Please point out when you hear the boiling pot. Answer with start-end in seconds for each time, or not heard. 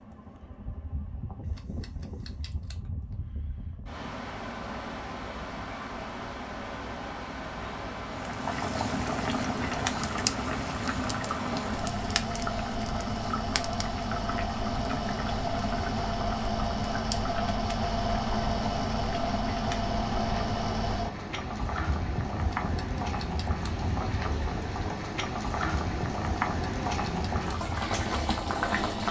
8.1-29.0.